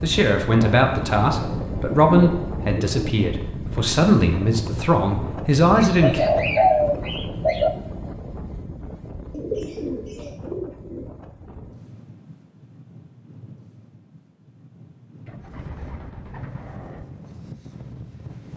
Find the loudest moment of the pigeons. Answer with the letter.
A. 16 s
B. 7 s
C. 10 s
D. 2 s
B.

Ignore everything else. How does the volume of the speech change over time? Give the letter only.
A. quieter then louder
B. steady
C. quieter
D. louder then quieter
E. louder
A.